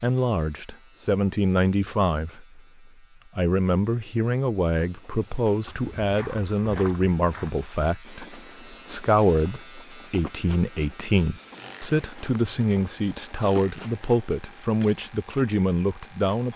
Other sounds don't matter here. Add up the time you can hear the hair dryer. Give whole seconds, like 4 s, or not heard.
not heard.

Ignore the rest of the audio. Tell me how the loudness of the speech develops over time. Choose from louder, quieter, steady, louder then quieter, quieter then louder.
steady.